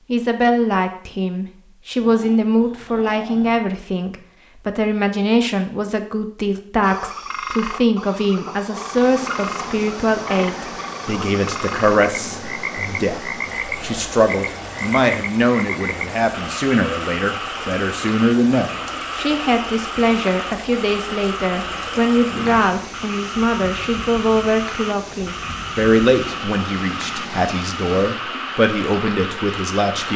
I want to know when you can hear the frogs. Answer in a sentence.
You can hear the frogs from 6.8 to 30.1 s.